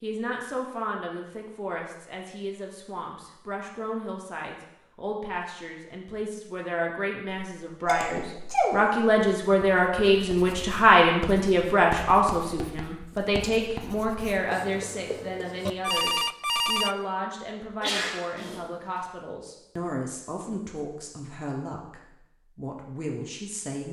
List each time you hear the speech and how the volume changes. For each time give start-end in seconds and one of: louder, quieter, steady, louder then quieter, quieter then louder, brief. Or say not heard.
0.0-23.8 louder then quieter.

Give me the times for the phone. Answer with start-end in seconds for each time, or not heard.
15.7-16.9.